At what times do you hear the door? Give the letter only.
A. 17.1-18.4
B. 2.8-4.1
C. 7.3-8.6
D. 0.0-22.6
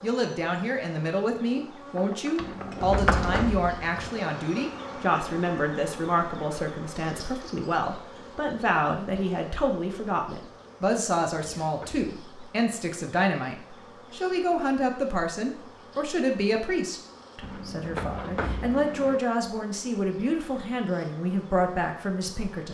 B.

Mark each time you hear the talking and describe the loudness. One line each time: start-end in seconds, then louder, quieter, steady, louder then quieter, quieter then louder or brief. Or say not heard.
0.0-22.6 steady.